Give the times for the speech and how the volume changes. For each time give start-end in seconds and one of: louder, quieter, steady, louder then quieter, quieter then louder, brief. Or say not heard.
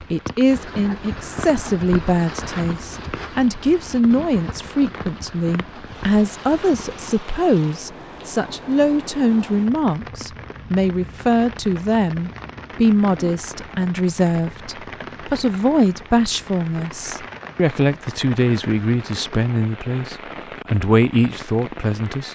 0.1-22.2 steady.